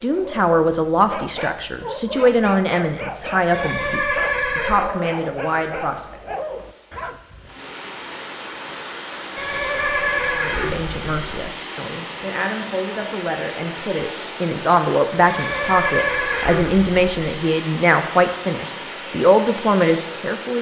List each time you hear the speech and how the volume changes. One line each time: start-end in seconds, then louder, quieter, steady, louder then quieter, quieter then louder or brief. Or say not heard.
0.0-6.4 quieter
10.3-20.5 louder.